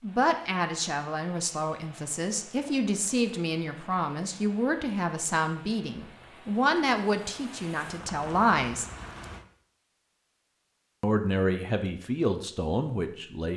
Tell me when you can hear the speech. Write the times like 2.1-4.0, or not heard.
0.0-8.8, 11.0-13.5.